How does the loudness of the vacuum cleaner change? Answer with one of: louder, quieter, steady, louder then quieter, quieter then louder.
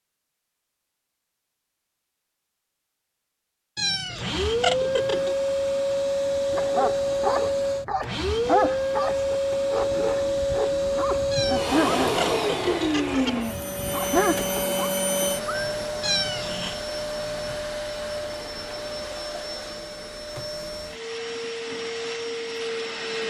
quieter.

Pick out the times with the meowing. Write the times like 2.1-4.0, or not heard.
3.8-5.3, 11.3-13.3, 16.0-16.9.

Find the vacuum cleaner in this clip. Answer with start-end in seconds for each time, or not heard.
4.2-23.2.